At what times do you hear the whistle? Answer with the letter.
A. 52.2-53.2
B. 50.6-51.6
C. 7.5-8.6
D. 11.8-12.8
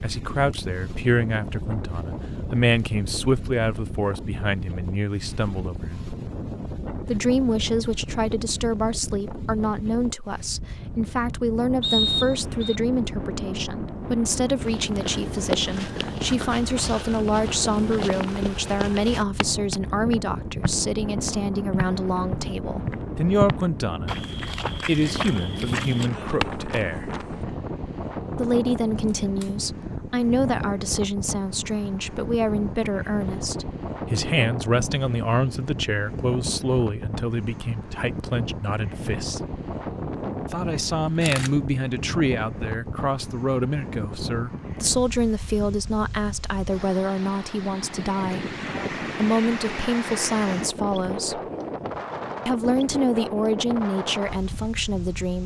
D.